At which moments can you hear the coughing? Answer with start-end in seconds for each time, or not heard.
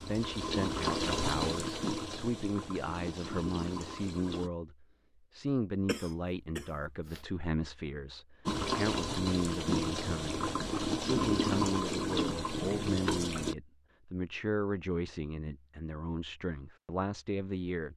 5.8-7.2.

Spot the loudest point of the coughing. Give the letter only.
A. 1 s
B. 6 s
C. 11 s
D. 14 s
B.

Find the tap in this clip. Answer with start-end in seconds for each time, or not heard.
0.0-4.5, 8.4-13.6.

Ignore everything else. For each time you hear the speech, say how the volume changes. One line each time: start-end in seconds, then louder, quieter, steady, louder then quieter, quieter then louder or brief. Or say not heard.
0.0-17.9 steady.